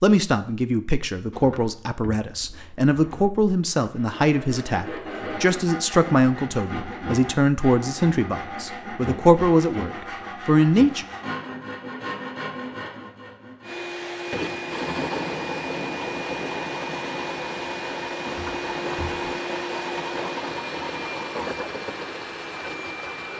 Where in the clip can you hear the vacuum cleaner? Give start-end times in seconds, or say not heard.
13.6-23.3.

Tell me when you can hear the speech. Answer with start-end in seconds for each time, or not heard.
0.0-11.1.